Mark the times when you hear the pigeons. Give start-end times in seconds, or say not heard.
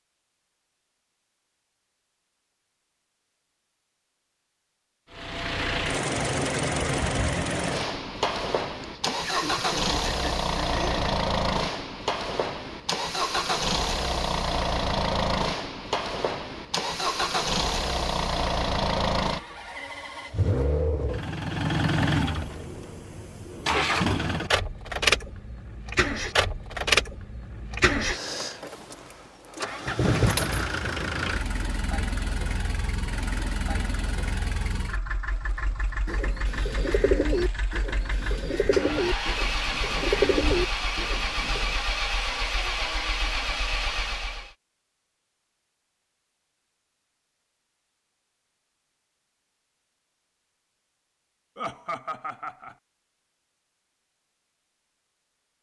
35.7-41.8.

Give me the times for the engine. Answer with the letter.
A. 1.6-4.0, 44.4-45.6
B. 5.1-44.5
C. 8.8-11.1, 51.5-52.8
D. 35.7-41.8
B.